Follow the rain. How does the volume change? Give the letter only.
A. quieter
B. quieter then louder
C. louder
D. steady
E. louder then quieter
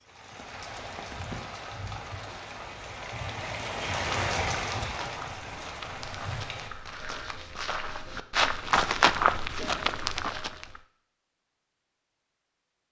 E.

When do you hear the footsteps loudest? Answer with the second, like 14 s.
9 s.